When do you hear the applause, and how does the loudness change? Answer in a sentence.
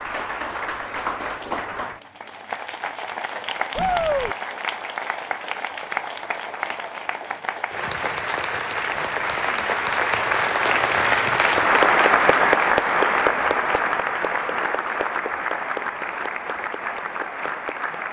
You can hear the applause from 0.0 to 18.0 s, getting louder then quieter.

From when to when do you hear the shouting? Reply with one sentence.
The shouting can be heard from 3.8 to 4.3 s.